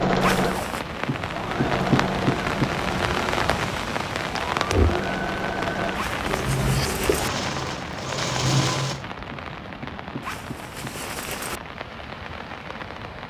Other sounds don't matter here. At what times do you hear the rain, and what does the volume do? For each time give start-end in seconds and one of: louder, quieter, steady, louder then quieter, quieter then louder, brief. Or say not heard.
0.0-13.2 quieter.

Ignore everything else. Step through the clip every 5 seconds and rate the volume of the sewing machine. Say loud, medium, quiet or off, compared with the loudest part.
loud, loud, off.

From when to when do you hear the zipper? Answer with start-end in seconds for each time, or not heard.
0.2-0.8, 6.0-7.3, 10.2-11.6.